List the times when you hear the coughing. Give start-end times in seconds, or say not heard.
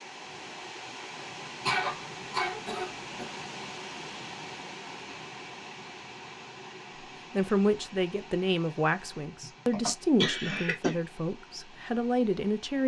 1.6-3.3, 9.4-11.0.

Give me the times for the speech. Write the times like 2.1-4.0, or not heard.
7.3-12.8.